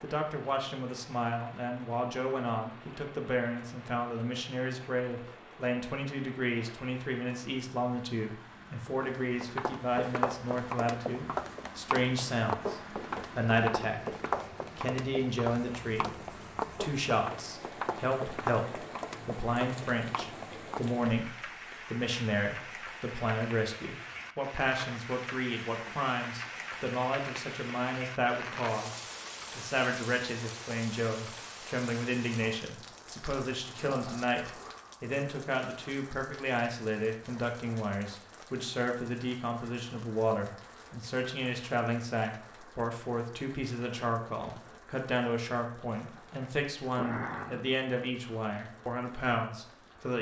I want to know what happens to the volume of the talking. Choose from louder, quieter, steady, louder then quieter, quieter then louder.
steady.